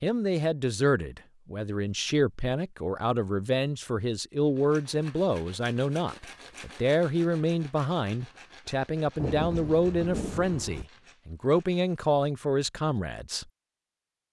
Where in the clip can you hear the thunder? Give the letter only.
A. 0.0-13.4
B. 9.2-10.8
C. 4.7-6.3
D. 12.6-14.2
B.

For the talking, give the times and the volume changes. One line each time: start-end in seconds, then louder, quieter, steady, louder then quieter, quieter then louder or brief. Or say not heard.
0.0-13.4 steady.